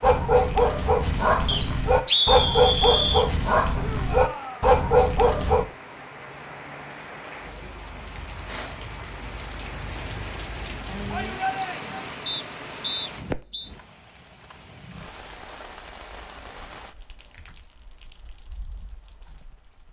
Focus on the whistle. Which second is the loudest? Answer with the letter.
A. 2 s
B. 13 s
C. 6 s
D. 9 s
A.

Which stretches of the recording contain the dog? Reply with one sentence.
The dog can be heard from 0.0 to 5.7 s.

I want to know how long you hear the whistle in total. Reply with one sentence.
You can hear the whistle for 3 seconds altogether.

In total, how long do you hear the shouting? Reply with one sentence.
The shouting can be heard for 2 seconds in total.